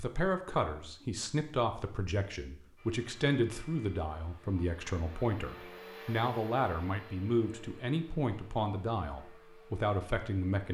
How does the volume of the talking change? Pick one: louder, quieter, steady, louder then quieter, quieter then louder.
steady.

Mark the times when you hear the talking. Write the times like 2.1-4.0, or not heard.
0.0-10.6.